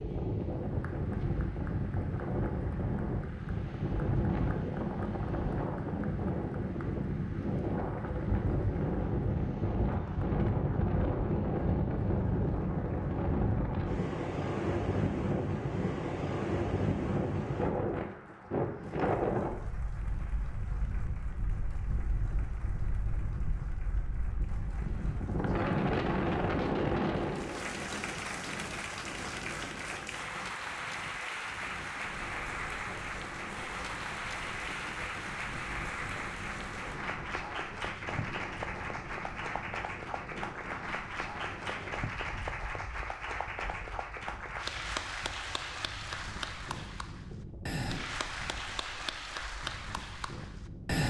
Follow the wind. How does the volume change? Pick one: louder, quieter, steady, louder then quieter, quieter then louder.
quieter.